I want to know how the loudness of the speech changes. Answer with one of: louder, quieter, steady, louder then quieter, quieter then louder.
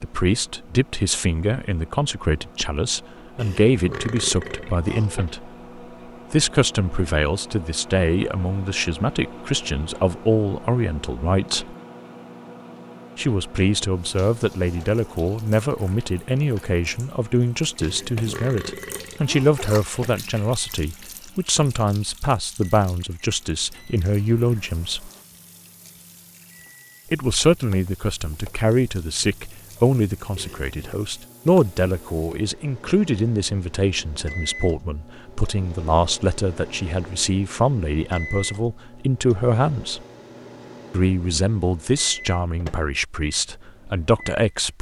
steady.